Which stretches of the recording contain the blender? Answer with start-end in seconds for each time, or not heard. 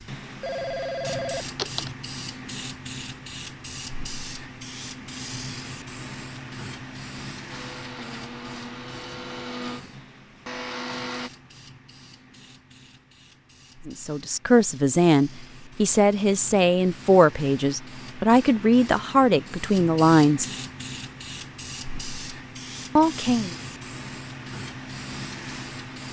7.5-11.3.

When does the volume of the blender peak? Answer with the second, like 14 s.
11 s.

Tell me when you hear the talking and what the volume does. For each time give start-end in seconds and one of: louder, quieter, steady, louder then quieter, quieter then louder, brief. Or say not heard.
13.8-20.4 steady
22.9-23.6 brief.